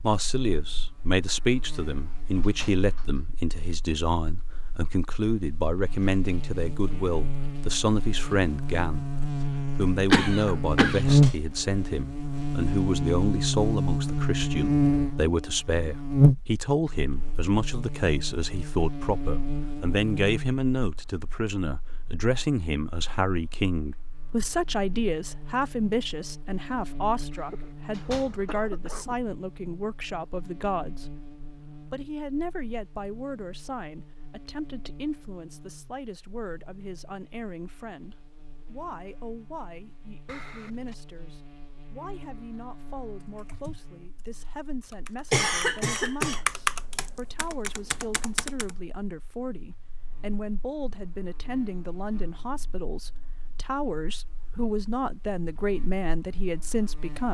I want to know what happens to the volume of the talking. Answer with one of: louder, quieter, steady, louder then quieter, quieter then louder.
quieter then louder.